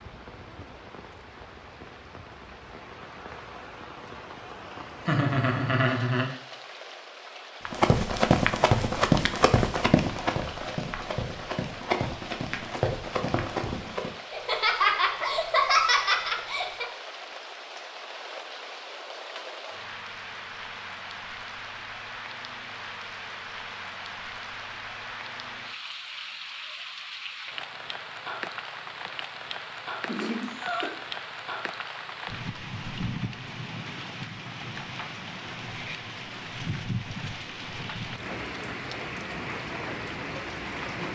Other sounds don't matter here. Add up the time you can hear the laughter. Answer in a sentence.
The laughter can be heard for 5 seconds in total.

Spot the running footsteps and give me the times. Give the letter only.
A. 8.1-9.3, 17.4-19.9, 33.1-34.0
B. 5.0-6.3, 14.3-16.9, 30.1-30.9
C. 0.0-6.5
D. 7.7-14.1
D.